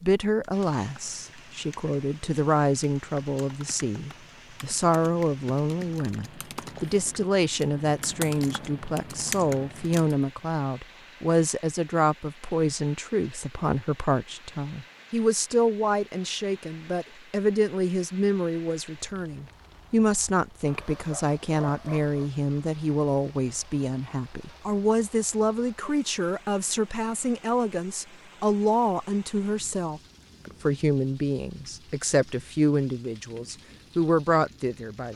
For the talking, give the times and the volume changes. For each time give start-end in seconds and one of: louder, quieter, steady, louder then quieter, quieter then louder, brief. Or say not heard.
0.0-35.1 steady.